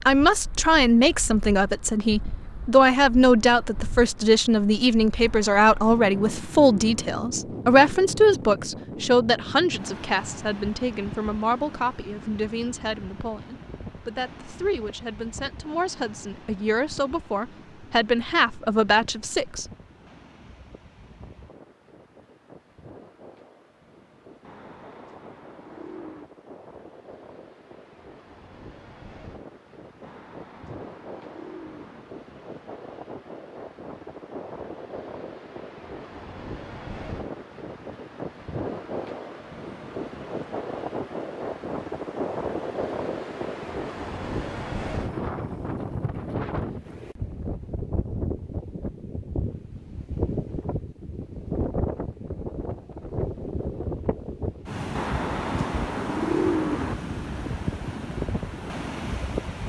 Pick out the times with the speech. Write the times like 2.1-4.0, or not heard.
0.0-19.6.